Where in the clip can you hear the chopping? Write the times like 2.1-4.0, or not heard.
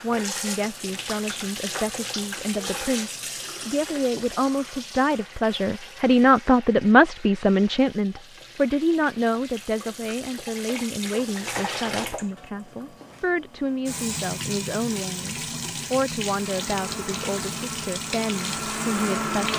not heard.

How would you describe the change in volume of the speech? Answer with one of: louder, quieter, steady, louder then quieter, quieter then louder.
louder then quieter.